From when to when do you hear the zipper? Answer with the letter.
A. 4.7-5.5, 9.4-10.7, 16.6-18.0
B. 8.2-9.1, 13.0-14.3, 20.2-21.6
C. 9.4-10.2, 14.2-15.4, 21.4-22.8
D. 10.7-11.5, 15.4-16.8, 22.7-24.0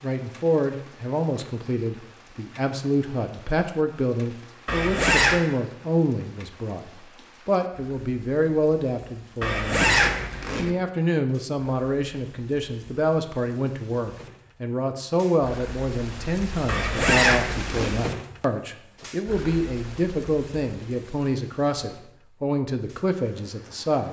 A.